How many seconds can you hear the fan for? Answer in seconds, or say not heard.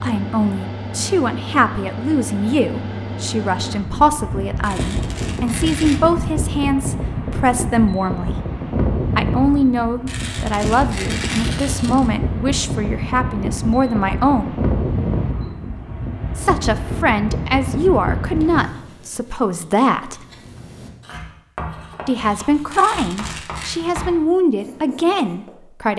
19 s.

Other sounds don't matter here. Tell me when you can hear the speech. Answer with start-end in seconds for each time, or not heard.
0.0-8.3, 9.2-14.5, 16.4-20.2, 22.1-25.9.